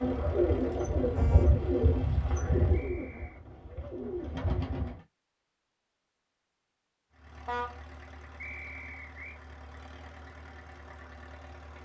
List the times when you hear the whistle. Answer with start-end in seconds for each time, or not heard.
2.7-3.4, 8.3-9.4.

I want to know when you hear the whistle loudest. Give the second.
9 s.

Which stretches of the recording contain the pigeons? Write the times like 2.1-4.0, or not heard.
0.0-5.0.